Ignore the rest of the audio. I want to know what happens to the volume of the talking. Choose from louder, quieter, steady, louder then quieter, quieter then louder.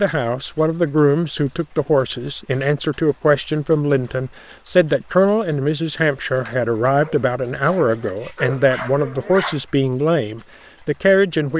steady.